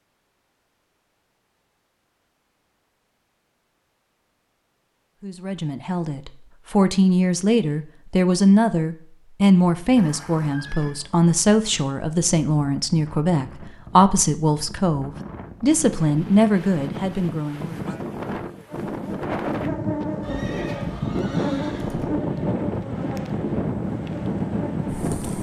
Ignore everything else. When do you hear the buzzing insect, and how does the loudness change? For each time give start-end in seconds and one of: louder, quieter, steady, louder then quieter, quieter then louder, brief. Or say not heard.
18.9-25.3 quieter.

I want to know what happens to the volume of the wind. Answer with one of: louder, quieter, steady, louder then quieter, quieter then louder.
louder.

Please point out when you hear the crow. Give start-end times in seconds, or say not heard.
not heard.